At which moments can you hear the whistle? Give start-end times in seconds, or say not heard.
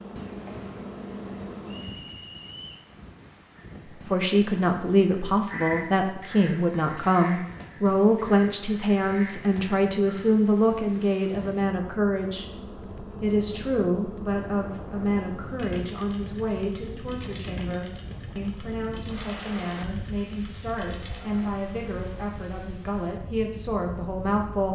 1.6-2.9.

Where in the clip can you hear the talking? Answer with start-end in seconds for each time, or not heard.
4.0-12.4, 13.2-24.6.